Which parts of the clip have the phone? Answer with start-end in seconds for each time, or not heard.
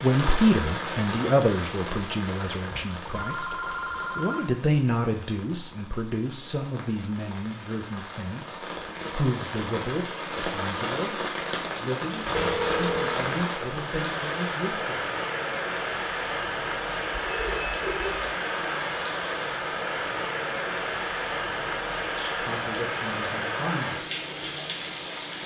2.6-4.5, 12.3-13.2, 17.1-18.3.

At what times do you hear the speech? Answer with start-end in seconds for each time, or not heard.
0.0-3.5, 4.2-15.1, 22.1-24.1.